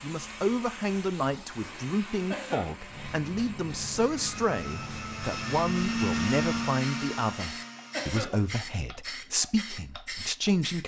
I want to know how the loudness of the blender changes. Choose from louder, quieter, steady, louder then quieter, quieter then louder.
louder.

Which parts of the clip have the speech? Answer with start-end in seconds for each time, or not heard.
0.0-10.8.